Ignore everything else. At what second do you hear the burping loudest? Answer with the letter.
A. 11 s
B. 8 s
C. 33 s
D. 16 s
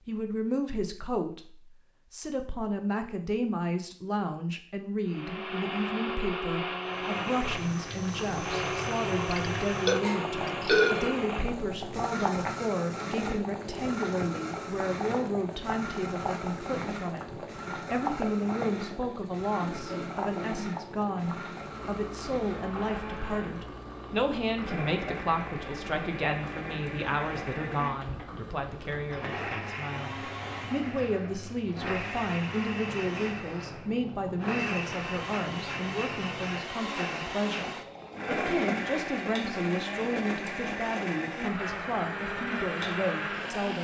A.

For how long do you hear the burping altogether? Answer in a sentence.
You can hear the burping for 2 seconds altogether.